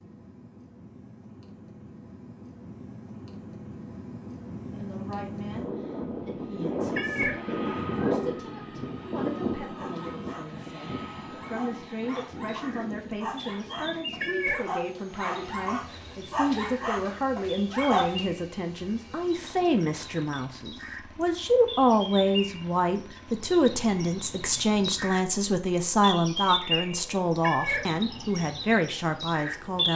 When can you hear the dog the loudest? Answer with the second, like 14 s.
18 s.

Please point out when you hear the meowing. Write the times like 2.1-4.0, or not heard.
7.0-7.4, 14.2-14.7, 27.4-27.9.